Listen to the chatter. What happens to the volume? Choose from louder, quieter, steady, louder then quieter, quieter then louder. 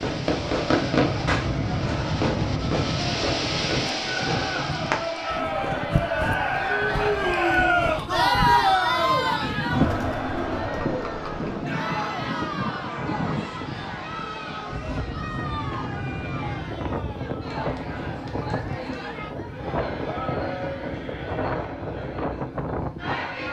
louder then quieter.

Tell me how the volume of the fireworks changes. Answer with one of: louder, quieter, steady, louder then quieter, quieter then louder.
quieter.